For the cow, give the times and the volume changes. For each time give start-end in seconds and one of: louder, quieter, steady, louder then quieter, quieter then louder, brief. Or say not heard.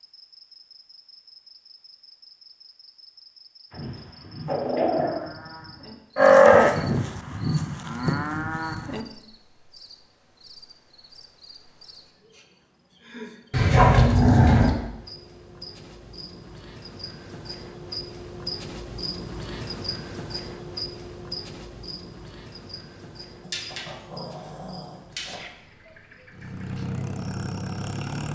3.8-9.1 louder then quieter.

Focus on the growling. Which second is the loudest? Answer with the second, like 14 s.
14 s.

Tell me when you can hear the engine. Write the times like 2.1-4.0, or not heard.
26.3-28.3.